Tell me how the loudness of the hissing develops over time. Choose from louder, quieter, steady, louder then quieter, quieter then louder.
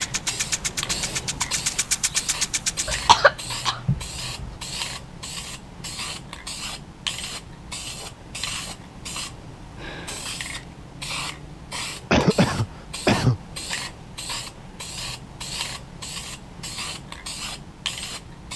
steady.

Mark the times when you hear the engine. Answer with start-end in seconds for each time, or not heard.
0.0-3.0.